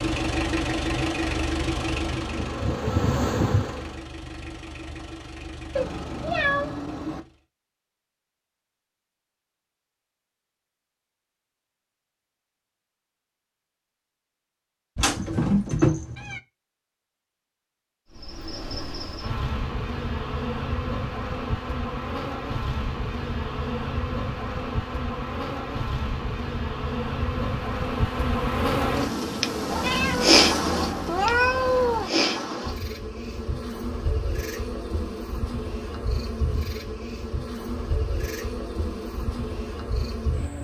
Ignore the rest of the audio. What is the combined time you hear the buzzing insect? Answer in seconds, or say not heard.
26 s.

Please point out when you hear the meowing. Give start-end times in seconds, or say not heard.
5.8-7.2, 14.9-16.4, 29.7-32.1.